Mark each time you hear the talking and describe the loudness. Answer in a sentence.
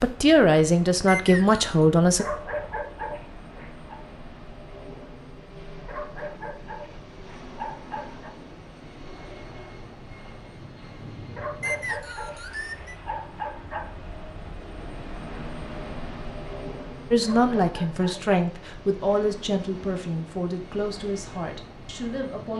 The talking can be heard briefly from 0.0 to 2.2 s; and from 17.1 to 22.5 s, getting quieter.